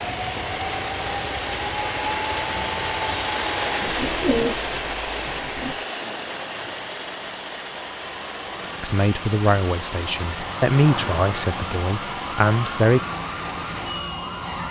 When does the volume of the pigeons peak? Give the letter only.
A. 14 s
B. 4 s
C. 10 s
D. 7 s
B.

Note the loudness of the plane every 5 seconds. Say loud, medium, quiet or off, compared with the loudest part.
loud, medium, medium.